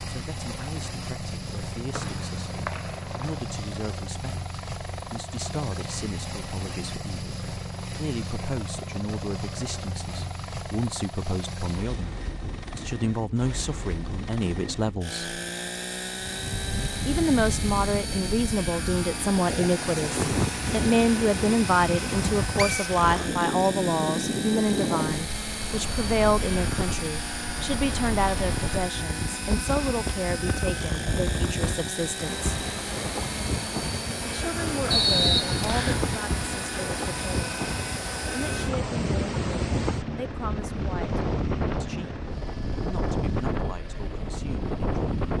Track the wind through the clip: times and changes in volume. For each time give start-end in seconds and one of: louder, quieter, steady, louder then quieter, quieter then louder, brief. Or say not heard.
16.2-45.3 steady.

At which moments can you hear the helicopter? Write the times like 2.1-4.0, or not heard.
0.0-45.3.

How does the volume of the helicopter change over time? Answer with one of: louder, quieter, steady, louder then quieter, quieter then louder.
steady.